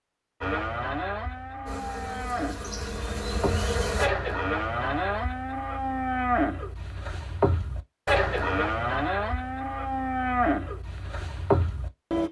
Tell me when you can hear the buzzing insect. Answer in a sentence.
The buzzing insect can be heard from 1.6 to 4.1 s.